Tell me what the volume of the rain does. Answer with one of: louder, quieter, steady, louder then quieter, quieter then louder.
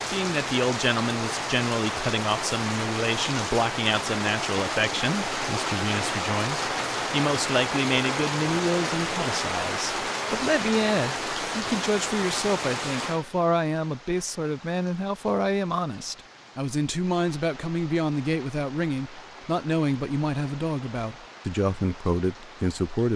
quieter.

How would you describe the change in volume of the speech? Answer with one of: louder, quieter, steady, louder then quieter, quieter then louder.
steady.